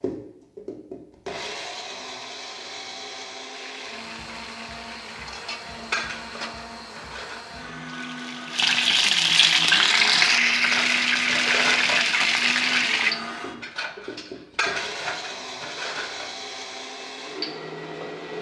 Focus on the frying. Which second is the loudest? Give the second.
10 s.